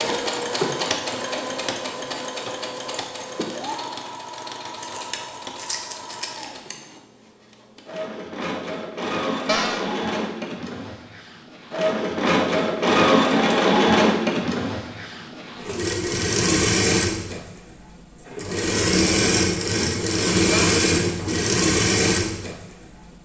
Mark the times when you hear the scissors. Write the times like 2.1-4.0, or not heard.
4.8-6.8.